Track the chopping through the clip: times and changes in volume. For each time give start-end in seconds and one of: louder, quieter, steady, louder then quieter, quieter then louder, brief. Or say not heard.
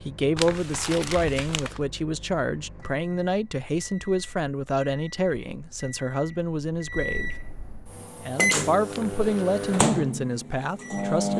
not heard.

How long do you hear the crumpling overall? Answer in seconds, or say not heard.
2 s.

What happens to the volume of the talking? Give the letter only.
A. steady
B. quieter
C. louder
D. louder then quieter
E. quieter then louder
A.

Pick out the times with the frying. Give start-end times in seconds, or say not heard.
not heard.